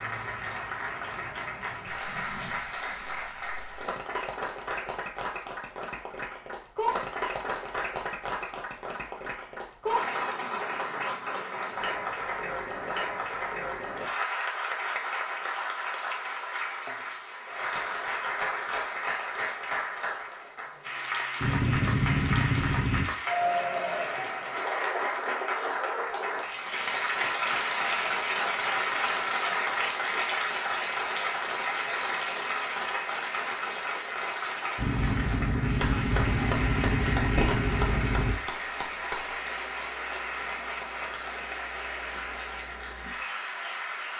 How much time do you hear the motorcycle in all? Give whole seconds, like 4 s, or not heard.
5 s.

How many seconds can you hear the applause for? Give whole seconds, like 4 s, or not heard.
44 s.